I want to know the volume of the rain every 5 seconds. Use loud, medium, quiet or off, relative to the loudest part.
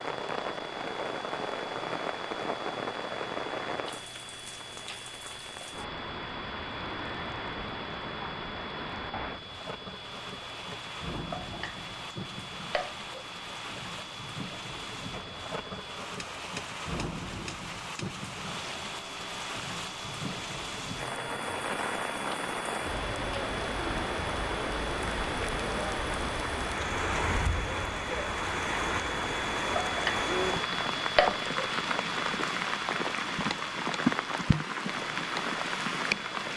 medium, medium, medium, medium, loud, loud, loud, loud.